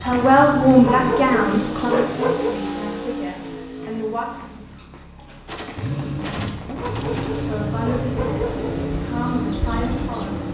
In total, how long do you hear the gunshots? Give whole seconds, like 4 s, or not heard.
2 s.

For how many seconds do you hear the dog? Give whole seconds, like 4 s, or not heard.
4 s.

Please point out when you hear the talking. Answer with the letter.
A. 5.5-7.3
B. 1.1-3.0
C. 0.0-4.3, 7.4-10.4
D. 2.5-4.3
C.